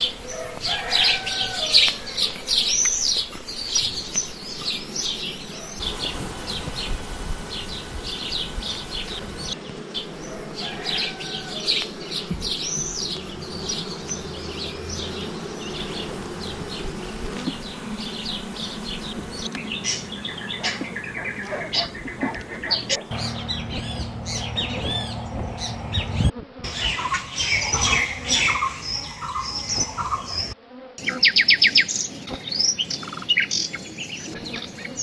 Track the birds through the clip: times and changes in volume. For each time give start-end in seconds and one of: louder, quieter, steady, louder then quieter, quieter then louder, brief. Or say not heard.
0.0-34.9 quieter then louder.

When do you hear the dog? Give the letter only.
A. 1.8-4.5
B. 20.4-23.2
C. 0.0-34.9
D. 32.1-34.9
B.